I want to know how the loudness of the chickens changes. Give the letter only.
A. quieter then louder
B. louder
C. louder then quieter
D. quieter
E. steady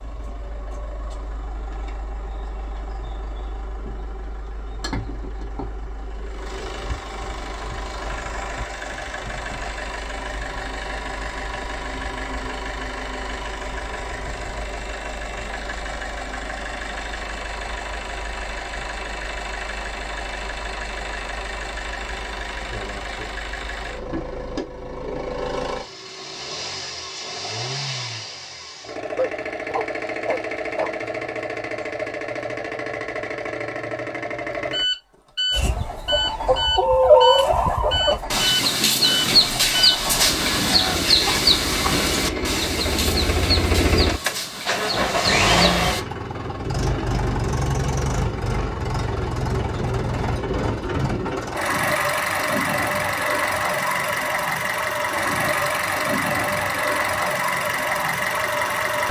D.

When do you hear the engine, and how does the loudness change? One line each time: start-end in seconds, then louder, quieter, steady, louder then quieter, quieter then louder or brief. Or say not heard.
0.0-59.0 louder.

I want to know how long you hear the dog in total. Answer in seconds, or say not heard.
2 s.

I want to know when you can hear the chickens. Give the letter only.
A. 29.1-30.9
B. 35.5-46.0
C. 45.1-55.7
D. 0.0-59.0
B.